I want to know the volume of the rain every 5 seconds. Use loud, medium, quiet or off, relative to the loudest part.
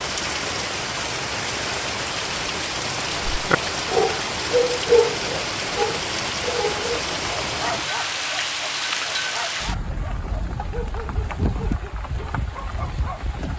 loud, loud, medium.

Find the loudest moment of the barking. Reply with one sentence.
The loudest moment of the barking is at 5 seconds.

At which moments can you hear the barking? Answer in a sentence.
You can hear the barking from 3.3 to 13.3 s.